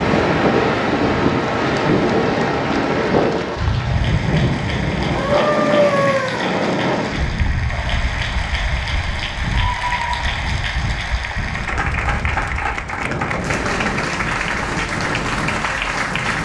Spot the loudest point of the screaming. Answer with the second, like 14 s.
6 s.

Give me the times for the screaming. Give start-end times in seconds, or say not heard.
5.1-6.5, 9.5-10.2.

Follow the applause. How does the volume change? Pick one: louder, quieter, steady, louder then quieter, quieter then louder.
louder.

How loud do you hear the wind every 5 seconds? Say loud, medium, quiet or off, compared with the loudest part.
loud, medium, medium, medium.